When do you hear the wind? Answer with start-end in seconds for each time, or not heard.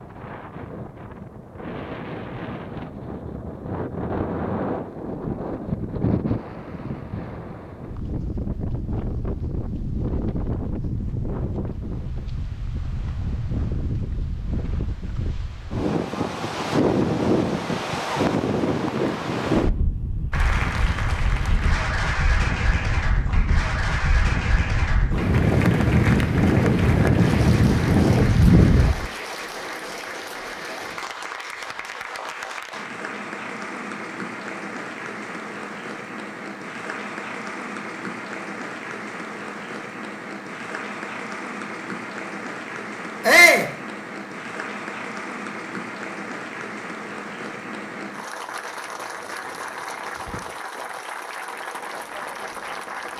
0.0-29.1.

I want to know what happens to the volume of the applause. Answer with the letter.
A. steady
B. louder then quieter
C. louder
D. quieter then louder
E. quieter
A.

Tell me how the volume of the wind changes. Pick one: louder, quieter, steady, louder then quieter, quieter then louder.
louder.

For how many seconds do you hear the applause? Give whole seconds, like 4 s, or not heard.
33 s.